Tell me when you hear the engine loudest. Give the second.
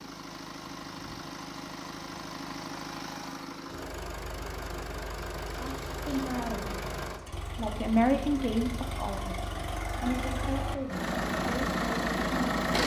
12 s.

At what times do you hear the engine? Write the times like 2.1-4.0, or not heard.
0.0-12.8.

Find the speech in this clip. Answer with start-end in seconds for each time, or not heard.
5.5-6.8, 7.5-12.6.